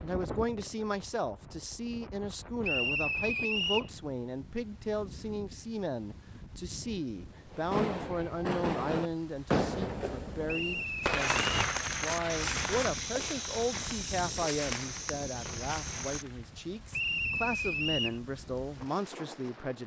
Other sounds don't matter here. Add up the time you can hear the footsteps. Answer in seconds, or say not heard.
5 s.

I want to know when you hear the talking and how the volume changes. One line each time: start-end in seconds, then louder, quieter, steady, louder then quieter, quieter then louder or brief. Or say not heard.
0.0-19.8 steady.